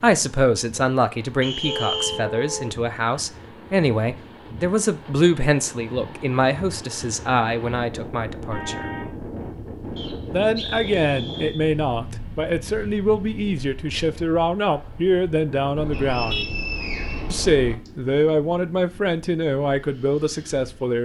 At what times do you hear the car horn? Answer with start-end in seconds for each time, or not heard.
1.6-2.8, 8.5-9.2, 15.8-17.8.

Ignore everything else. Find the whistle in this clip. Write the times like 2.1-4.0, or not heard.
1.4-2.2, 9.9-11.6, 15.9-17.9.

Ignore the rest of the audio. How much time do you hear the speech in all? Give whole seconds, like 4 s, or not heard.
19 s.